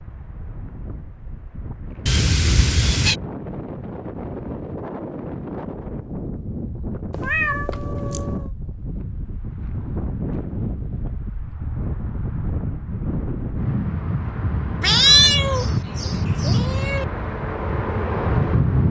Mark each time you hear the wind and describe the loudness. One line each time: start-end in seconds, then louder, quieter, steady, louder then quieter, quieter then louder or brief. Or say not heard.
0.0-18.8 louder.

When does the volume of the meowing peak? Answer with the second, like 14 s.
15 s.